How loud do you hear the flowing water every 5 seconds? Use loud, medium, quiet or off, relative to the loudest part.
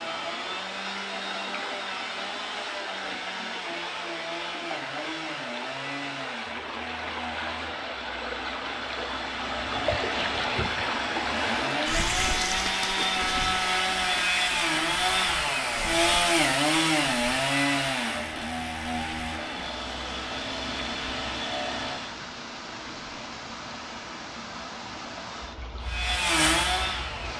medium, loud, loud, medium, medium, medium.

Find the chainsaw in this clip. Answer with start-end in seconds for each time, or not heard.
0.0-22.1, 25.8-27.3.